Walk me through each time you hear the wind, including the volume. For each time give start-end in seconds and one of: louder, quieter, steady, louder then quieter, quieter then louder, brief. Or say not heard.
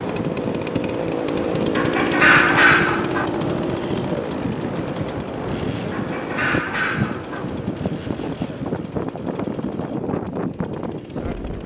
0.0-11.6 steady.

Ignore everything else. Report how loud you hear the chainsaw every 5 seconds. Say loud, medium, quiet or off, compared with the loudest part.
loud, medium, quiet.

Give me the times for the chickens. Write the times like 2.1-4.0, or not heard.
1.8-3.3, 5.9-7.5.